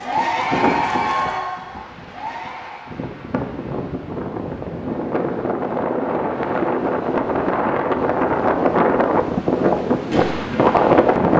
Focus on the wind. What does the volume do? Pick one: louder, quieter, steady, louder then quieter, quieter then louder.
louder.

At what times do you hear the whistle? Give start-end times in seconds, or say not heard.
not heard.